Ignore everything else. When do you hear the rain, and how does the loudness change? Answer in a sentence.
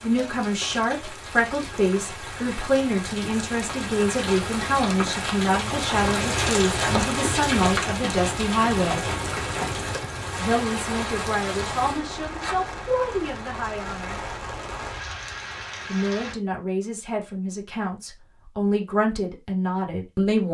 You can hear the rain from 0.0 to 16.4 s, getting louder then quieter.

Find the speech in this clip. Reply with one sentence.
The speech can be heard from 0.0 to 9.1 s, from 10.4 to 14.2 s and from 15.8 to 20.4 s.